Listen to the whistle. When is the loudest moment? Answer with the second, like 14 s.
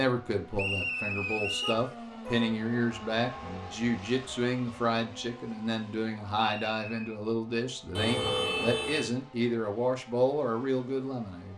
1 s.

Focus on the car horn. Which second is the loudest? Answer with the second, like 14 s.
8 s.